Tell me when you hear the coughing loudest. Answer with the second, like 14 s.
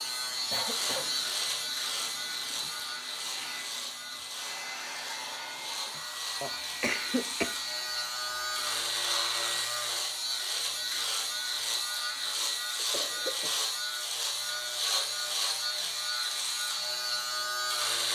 7 s.